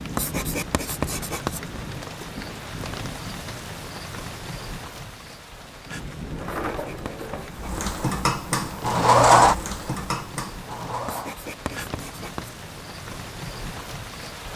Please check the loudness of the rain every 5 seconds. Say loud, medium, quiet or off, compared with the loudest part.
loud, medium, loud.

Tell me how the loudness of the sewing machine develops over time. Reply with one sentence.
The volume of the sewing machine goes up, then down.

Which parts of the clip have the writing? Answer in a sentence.
The writing can be heard from 0.1 to 1.6 s, from 6.5 to 7.9 s and from 11.1 to 12.6 s.